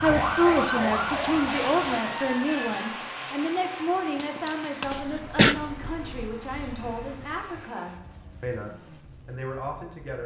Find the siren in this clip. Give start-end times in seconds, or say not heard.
0.0-2.8.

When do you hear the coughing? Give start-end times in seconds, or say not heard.
4.2-5.5.